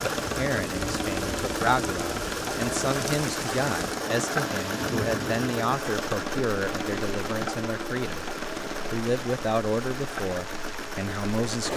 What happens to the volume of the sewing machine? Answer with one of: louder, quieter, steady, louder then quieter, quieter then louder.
quieter.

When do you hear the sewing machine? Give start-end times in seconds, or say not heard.
0.0-11.7.